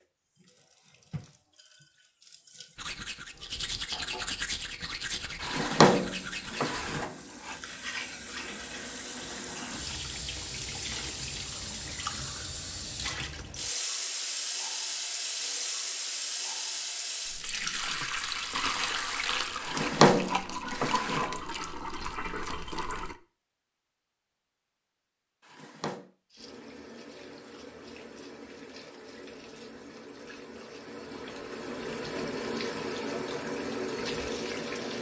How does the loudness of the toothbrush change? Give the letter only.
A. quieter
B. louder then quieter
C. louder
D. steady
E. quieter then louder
A.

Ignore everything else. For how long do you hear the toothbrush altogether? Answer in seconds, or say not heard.
7 s.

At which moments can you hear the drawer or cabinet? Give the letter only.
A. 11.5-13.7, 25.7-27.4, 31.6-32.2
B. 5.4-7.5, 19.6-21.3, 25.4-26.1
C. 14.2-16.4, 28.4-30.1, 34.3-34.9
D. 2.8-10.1
B.